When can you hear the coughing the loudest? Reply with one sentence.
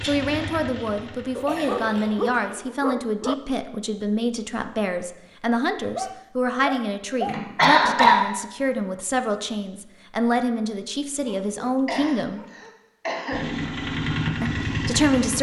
The volume of the coughing peaks at 8 seconds.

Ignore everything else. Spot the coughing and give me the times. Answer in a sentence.
You can hear the coughing from 1.4 to 2.5 s, from 7.2 to 8.2 s and from 11.8 to 13.4 s.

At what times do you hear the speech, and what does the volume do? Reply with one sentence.
You can hear the speech from 0.1 to 12.4 s, at a steady volume; and briefly from 14.4 to 15.3 s.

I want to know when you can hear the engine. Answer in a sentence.
The engine can be heard from 0.0 to 2.4 s and from 13.3 to 15.3 s.